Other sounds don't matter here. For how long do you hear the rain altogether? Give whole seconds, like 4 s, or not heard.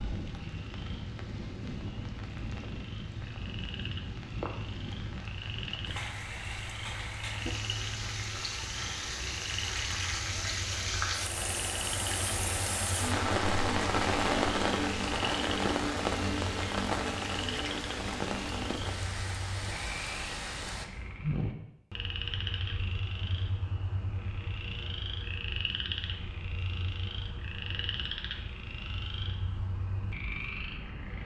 21 s.